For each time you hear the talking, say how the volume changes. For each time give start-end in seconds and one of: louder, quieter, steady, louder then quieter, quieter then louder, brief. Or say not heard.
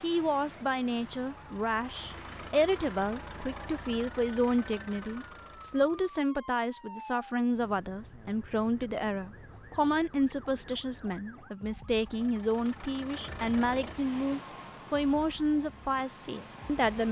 0.0-17.0 steady.